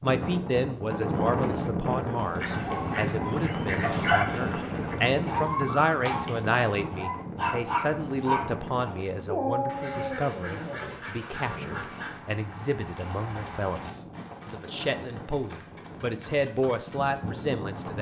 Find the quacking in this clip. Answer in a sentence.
You can hear the quacking from 2.4 to 5.0 s and from 9.7 to 12.2 s.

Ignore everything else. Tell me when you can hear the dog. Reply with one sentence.
The dog can be heard from 2.5 to 11.8 s.